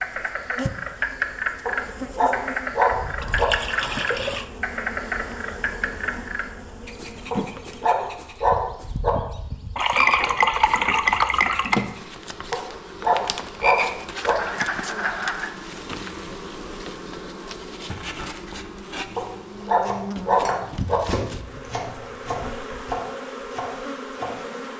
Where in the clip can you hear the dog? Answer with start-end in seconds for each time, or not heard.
1.6-3.5, 7.3-9.1, 12.5-14.3, 19.1-20.9.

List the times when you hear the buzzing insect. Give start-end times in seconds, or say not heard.
0.0-24.7.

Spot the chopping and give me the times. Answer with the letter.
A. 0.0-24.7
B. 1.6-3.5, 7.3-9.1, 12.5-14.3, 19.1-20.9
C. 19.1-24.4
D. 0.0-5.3
C.